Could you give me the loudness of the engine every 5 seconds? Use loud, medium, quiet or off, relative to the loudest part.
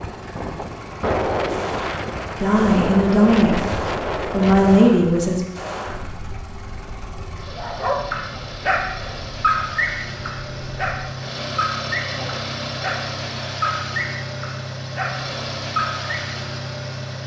medium, medium, loud, loud.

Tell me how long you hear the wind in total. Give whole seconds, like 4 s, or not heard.
11 s.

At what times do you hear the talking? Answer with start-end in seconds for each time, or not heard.
2.4-3.6, 4.3-5.4.